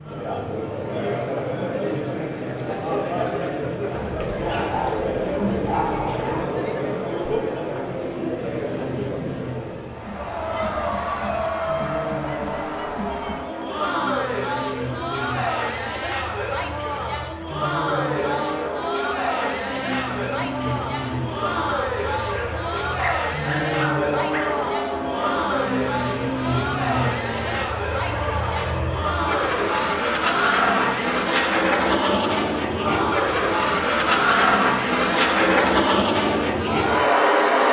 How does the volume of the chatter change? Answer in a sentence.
The volume of the chatter stays about the same.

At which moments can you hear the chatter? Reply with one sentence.
The chatter can be heard from 0.0 to 37.6 s.